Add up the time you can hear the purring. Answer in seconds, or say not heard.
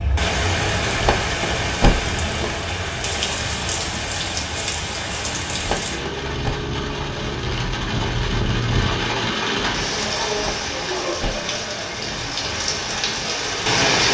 not heard.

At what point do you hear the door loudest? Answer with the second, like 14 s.
2 s.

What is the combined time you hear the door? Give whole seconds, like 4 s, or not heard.
4 s.